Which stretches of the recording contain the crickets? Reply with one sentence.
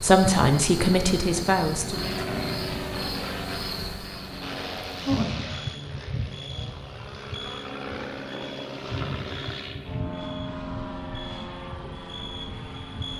You can hear the crickets from 0.0 to 13.1 s.